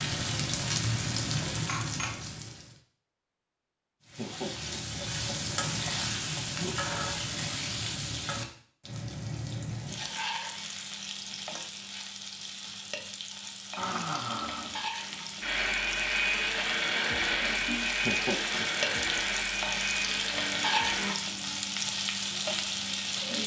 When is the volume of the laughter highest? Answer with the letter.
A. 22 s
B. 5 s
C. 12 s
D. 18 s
D.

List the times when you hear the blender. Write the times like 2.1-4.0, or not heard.
13.8-21.1.